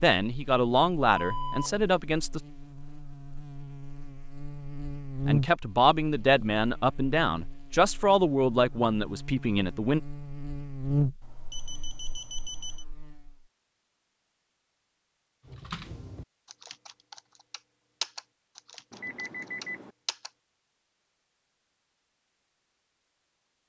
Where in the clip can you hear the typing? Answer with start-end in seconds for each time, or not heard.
15.4-20.3.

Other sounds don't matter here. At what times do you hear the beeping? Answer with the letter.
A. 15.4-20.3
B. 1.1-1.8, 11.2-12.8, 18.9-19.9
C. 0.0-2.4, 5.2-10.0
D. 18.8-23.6
B.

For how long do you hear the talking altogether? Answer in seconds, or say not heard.
7 s.